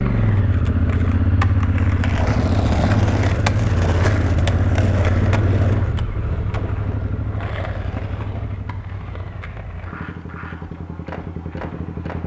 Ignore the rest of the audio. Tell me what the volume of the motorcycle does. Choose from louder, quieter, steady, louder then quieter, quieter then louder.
quieter.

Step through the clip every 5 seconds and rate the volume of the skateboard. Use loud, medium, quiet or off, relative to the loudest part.
loud, medium, medium.